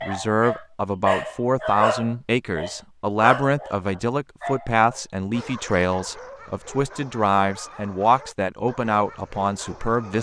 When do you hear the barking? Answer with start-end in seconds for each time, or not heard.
0.0-10.1.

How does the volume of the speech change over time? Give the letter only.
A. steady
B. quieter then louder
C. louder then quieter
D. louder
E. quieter
A.